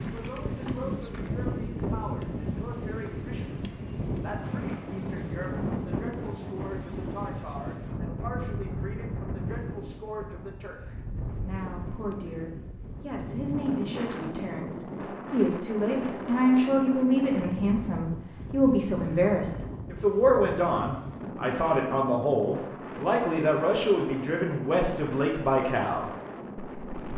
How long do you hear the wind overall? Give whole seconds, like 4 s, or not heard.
27 s.